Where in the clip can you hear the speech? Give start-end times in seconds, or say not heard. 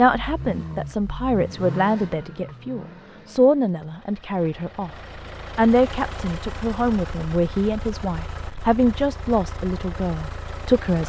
0.0-4.9, 5.5-11.0.